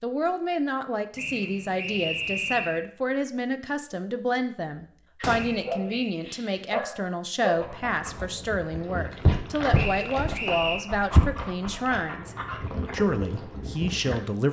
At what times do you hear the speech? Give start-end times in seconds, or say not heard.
0.0-14.4.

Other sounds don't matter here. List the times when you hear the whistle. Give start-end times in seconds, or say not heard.
1.1-2.8, 5.5-6.2, 9.7-10.8.